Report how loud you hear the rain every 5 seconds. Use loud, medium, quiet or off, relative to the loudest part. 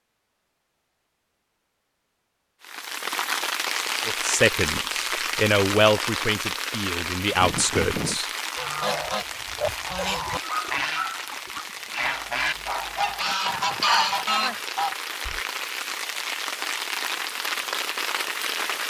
loud, loud, medium, loud.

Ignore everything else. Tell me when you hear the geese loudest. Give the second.
14 s.